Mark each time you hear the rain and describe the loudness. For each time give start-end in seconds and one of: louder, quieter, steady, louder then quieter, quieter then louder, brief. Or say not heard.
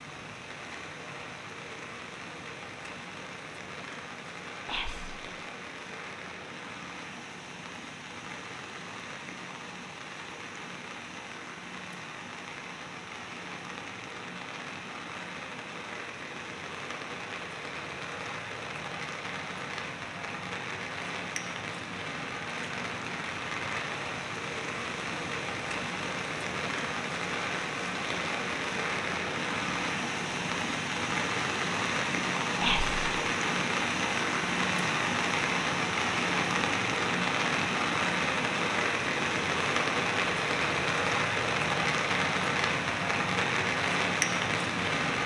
0.0-45.2 louder.